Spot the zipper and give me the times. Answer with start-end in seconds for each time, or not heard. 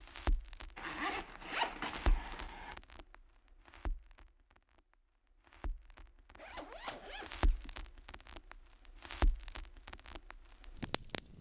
0.8-2.8, 6.3-7.8.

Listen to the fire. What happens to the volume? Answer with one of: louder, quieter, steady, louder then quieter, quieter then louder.
quieter then louder.